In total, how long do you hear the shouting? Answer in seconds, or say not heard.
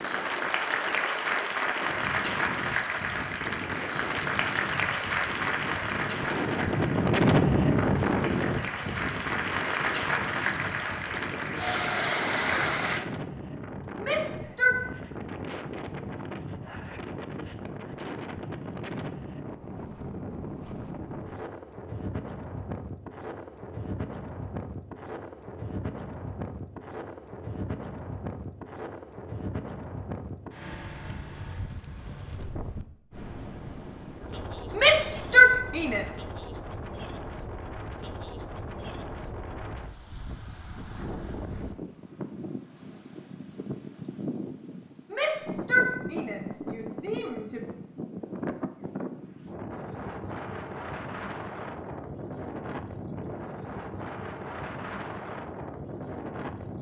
5 s.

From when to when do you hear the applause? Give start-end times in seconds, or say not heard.
0.0-13.0.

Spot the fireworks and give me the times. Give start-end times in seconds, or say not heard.
not heard.